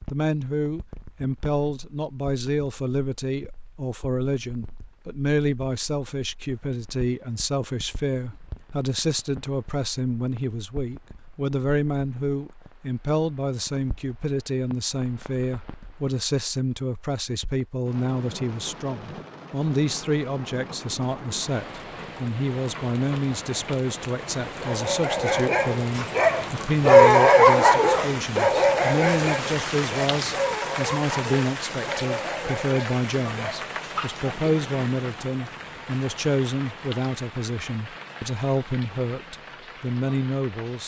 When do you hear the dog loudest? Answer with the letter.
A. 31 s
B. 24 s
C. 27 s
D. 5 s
C.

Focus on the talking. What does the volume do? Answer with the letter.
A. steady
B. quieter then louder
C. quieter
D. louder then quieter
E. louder
A.